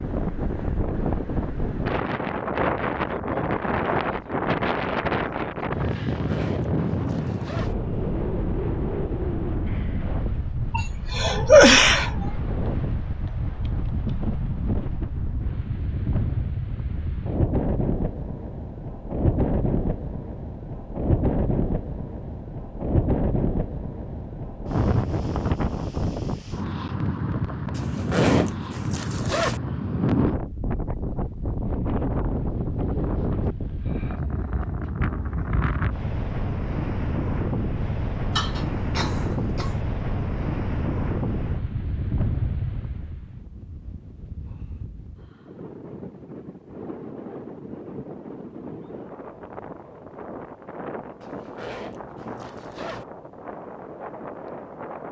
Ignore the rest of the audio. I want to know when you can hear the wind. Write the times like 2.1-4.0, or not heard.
0.0-55.0.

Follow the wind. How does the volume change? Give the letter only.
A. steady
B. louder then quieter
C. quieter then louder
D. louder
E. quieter
E.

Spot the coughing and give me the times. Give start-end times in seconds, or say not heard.
10.8-12.1, 38.3-39.8.